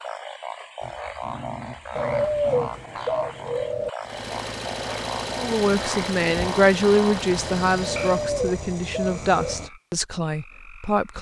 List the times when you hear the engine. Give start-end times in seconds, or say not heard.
4.0-8.3.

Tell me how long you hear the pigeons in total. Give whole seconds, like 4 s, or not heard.
4 s.